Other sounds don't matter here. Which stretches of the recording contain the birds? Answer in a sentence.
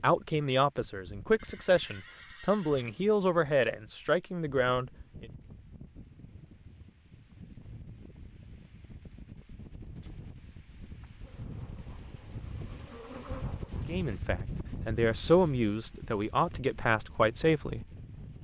The birds can't be heard in this clip.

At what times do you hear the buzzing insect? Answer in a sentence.
The buzzing insect can be heard from 11.2 to 13.9 s.